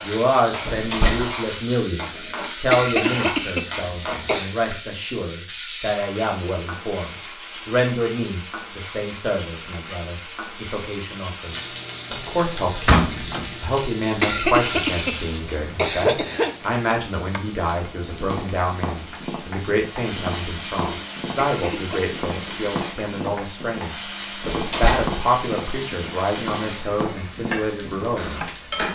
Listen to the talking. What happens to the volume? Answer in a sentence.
The loudness of the talking stays about the same.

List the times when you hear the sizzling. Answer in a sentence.
The sizzling can be heard from 0.0 to 28.8 s.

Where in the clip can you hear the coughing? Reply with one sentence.
You can hear the coughing from 2.7 to 4.5 s, from 14.2 to 16.5 s and from 21.4 to 22.0 s.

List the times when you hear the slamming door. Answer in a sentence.
You can hear the slamming door from 0.7 to 1.3 s, from 12.8 to 13.6 s and from 24.4 to 25.2 s.